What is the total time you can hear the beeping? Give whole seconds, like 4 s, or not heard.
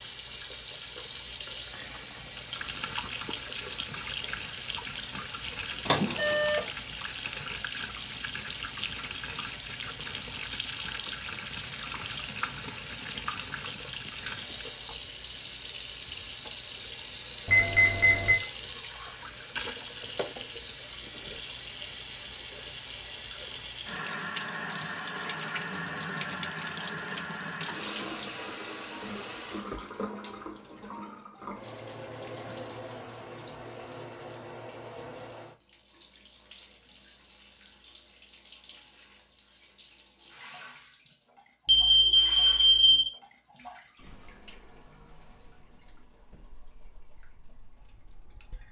3 s.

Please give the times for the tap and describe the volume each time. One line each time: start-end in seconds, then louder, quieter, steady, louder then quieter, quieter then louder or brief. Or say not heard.
0.0-48.6 quieter.